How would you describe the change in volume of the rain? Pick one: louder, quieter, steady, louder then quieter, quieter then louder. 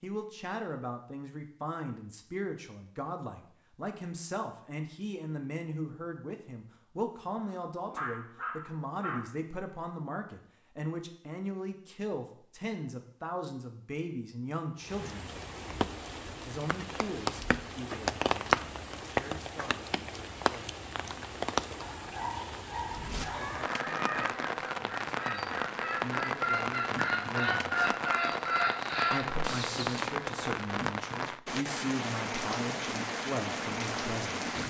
steady.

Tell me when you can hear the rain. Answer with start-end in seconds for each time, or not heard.
14.8-34.6.